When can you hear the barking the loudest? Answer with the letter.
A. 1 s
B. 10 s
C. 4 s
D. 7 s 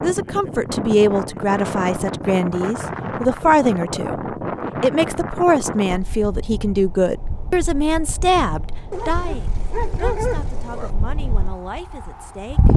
B.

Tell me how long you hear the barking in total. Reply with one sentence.
The barking can be heard for 2 seconds in total.